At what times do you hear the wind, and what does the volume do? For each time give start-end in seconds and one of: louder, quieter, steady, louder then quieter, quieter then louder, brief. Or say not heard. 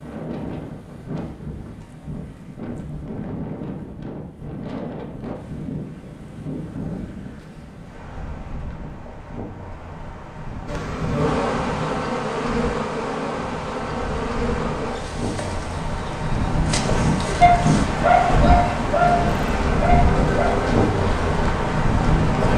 0.0-22.5 louder.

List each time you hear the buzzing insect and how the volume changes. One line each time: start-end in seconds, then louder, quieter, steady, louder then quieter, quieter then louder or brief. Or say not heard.
10.7-22.5 quieter then louder.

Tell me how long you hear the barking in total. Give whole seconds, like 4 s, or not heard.
3 s.